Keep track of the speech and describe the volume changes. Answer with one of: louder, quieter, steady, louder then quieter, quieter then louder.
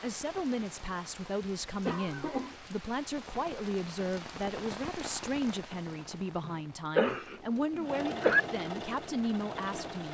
steady.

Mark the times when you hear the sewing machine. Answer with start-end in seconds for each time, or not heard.
7.0-10.1.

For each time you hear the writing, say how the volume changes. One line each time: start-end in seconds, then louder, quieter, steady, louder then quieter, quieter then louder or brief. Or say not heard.
not heard.